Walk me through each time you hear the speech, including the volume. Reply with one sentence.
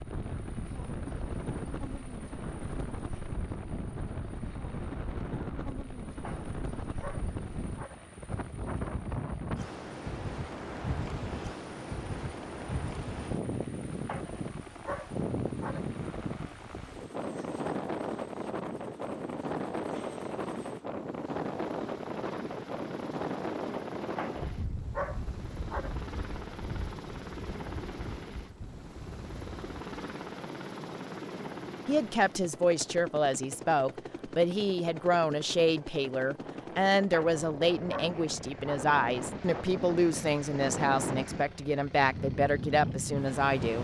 The speech can be heard from 31.9 to 43.8 s, at a steady volume.